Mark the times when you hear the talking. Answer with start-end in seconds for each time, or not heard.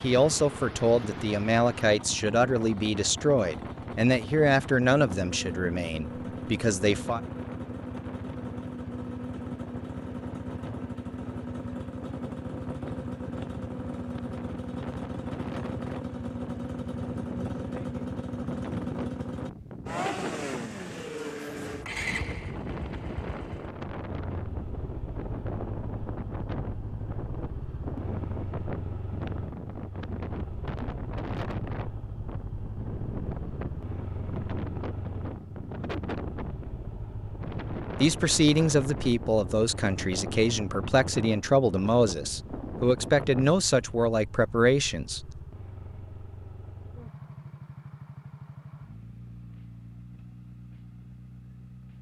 0.0-7.2, 38.0-45.4.